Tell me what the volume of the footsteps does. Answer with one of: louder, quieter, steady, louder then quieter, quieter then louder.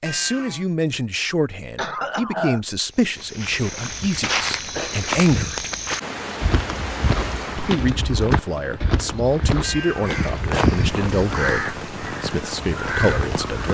steady.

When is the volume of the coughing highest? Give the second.
2 s.